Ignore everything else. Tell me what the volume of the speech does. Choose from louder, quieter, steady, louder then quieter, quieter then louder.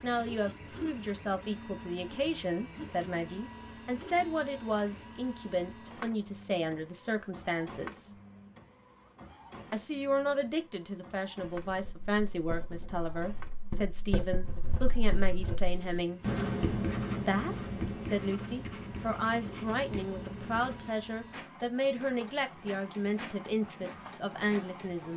steady.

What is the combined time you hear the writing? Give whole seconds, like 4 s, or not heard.
9 s.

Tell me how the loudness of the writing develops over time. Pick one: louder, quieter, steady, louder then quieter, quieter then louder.
louder then quieter.